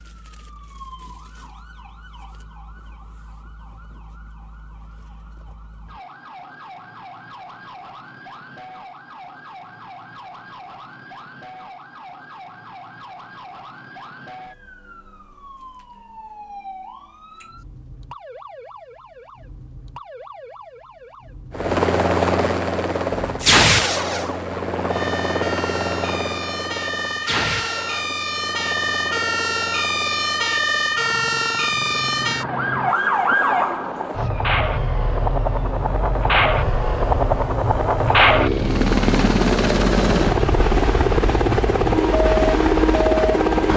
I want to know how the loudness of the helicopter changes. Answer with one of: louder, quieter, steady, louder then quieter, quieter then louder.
quieter then louder.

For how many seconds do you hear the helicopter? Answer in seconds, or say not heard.
22 s.